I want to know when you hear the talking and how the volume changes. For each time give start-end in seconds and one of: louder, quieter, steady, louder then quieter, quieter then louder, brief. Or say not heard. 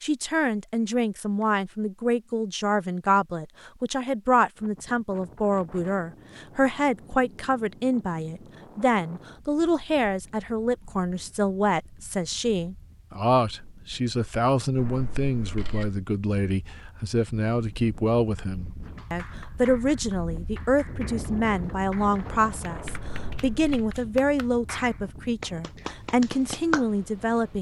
0.0-27.5 steady.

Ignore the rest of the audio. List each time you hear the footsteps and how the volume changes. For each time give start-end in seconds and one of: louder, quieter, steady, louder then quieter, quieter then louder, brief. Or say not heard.
not heard.